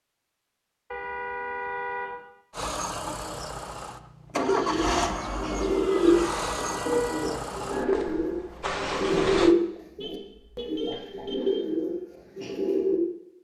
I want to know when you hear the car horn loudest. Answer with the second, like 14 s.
2 s.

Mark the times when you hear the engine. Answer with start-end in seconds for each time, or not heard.
2.5-9.6.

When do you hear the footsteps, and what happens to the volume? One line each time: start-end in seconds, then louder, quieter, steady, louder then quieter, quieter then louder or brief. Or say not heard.
not heard.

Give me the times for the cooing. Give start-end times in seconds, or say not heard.
4.3-13.0.